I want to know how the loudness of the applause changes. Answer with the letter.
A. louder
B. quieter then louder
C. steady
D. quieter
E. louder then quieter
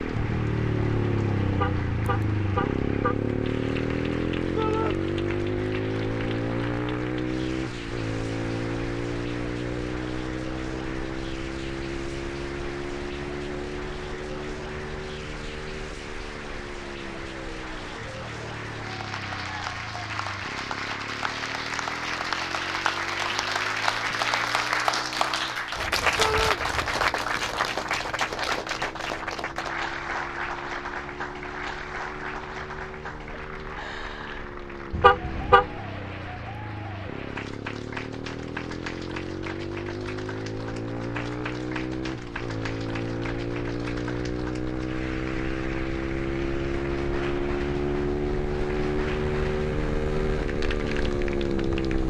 E.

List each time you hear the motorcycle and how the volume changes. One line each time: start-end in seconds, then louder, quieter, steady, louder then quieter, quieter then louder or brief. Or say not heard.
0.0-52.0 quieter then louder.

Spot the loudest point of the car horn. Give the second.
35 s.